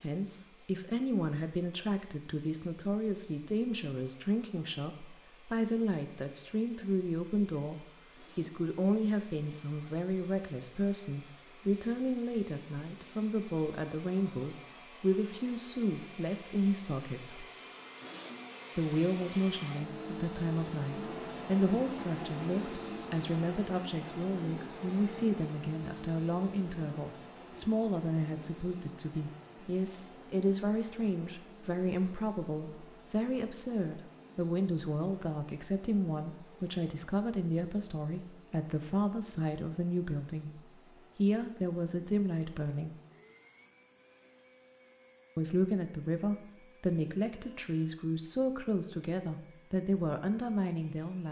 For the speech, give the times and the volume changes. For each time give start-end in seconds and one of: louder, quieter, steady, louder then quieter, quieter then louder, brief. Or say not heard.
0.0-17.4 steady
18.8-43.0 steady
45.4-51.2 steady.